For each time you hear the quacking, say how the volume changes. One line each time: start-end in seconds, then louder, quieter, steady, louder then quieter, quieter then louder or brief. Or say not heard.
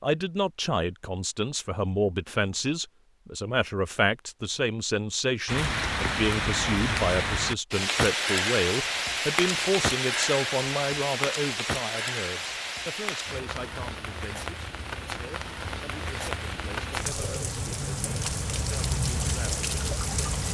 not heard.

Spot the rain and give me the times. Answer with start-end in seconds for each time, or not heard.
5.5-20.4.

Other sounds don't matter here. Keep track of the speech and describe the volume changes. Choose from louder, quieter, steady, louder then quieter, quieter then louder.
quieter.